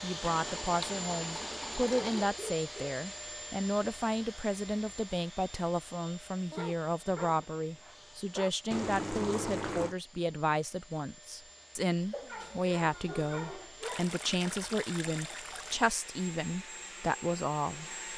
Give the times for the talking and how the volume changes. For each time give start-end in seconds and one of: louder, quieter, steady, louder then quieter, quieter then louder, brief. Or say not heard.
0.0-17.9 steady.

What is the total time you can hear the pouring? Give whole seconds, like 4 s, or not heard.
5 s.